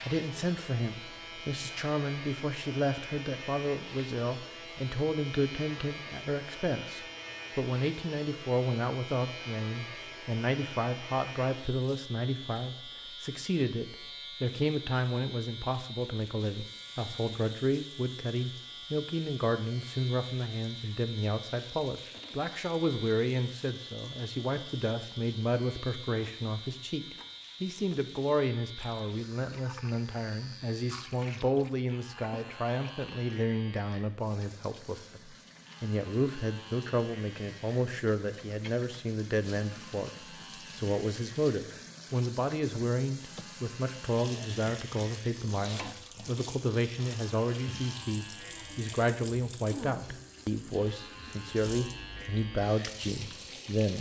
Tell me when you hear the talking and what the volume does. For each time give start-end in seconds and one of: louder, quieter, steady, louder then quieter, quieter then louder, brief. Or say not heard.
0.0-40.1 steady
40.7-53.9 steady.